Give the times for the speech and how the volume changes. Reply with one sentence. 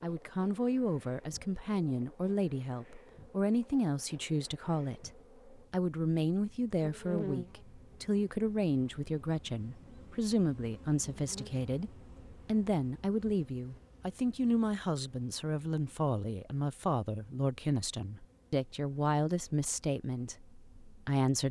You can hear the speech from 0.0 to 21.4 s, at a steady volume.